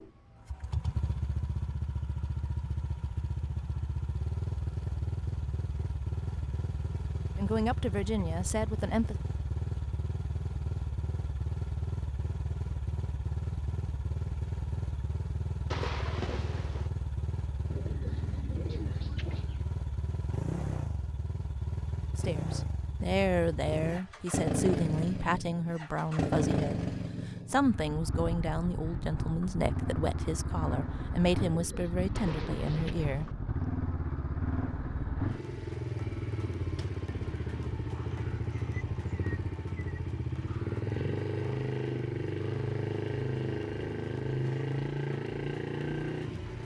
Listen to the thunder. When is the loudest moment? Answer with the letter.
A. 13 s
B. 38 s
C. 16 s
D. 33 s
C.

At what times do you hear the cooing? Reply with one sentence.
You can hear the cooing from 17.7 to 19.6 s and from 31.5 to 33.0 s.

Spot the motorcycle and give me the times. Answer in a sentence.
The motorcycle can be heard from 0.0 to 46.6 s.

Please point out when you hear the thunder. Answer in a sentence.
You can hear the thunder from 15.7 to 16.9 s and from 32.1 to 33.4 s.